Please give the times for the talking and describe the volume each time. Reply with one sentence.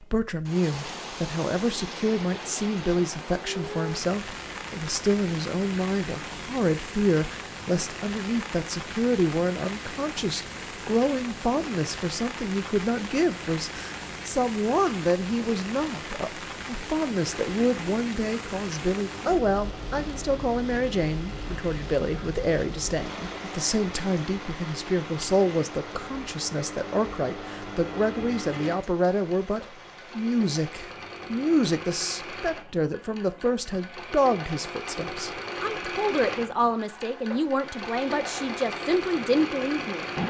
The talking can be heard from 0.0 to 40.0 s, at a steady volume.